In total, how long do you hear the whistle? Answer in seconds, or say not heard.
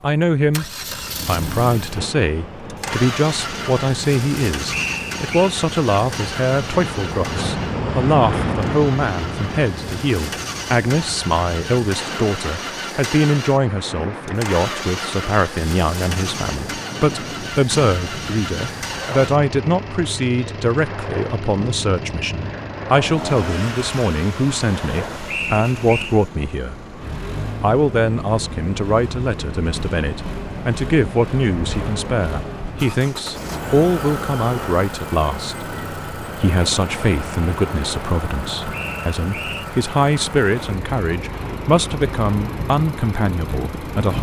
3 s.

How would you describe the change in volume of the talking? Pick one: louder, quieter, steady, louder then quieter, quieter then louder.
steady.